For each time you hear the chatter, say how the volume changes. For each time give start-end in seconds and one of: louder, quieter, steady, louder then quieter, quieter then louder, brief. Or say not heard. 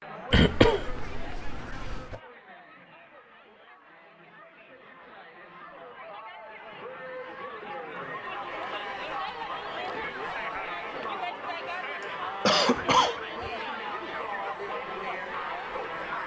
0.0-16.2 louder.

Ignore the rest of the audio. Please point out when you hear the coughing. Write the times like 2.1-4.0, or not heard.
0.3-2.1, 12.4-13.5.